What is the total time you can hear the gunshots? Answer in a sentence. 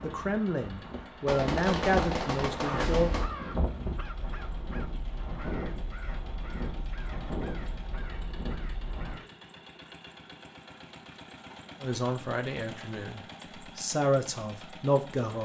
You can hear the gunshots for 2 seconds altogether.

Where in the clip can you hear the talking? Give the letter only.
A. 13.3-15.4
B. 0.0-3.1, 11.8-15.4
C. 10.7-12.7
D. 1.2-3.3
B.